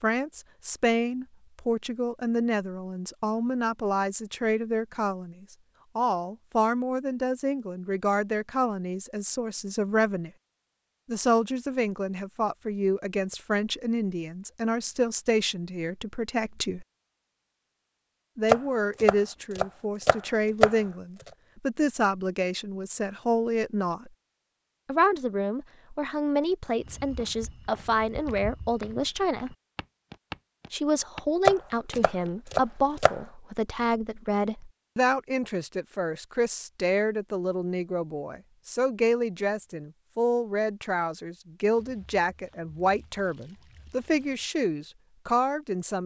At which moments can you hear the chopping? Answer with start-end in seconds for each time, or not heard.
18.4-20.8, 31.4-33.1.